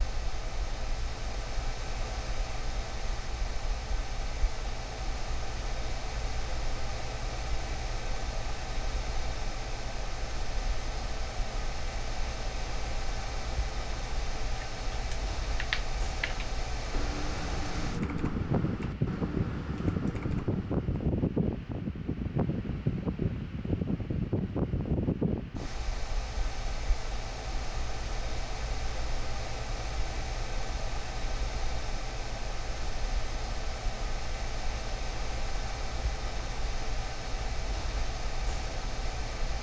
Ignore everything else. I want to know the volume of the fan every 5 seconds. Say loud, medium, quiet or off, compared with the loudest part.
medium, medium, medium, loud, loud, medium, medium, medium.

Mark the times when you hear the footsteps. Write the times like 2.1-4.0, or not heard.
not heard.